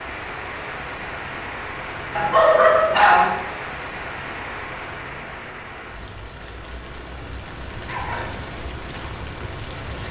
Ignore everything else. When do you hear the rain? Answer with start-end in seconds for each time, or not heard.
0.0-10.0.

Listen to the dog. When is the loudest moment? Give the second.
3 s.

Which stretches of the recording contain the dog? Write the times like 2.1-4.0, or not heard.
2.1-3.3, 7.0-8.4.